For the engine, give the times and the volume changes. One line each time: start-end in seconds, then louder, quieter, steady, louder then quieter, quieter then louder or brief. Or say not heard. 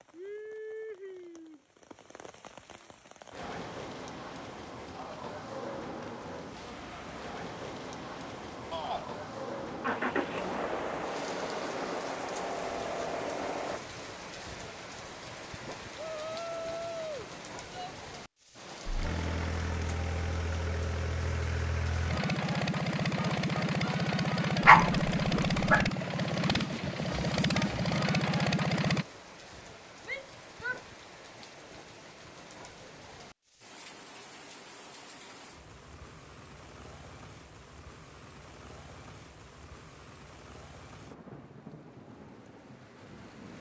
9.8-13.8 steady
18.9-29.1 louder.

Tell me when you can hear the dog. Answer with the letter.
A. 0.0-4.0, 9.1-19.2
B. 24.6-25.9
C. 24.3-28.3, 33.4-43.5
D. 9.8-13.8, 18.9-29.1
B.